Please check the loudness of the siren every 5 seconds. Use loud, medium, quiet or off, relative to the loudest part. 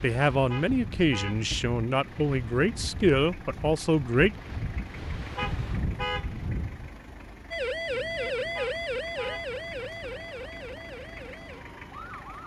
off, loud, medium.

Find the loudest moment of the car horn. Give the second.
6 s.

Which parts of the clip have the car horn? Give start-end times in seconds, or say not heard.
0.5-1.4, 5.3-6.3, 8.6-9.5.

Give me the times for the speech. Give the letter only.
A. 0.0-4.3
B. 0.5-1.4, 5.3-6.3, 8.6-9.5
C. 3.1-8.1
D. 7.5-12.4
A.